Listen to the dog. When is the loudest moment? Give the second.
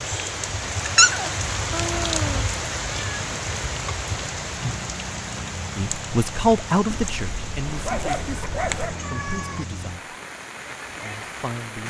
1 s.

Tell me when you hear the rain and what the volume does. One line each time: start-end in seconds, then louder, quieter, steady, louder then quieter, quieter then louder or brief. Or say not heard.
0.0-11.8 quieter.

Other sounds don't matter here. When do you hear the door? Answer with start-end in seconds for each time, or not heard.
not heard.